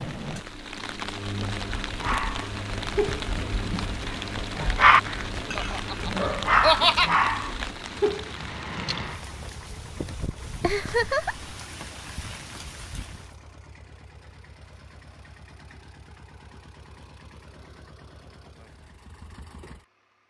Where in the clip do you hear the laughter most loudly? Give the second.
7 s.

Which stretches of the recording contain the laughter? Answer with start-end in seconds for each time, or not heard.
5.5-7.1, 10.6-11.5.